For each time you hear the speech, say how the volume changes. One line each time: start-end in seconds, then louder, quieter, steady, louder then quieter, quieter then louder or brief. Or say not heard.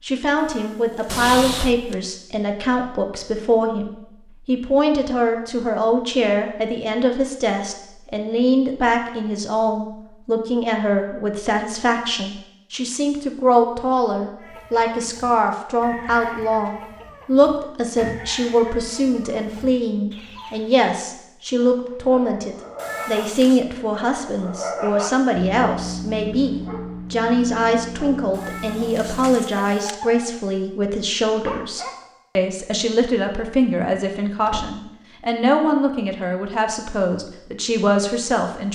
0.0-38.6 steady.